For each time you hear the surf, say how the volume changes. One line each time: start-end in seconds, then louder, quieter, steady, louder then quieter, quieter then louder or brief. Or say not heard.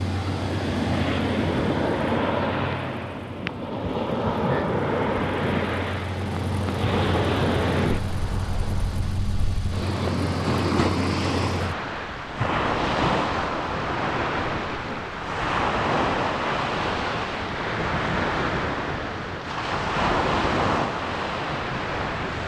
0.0-22.4 steady.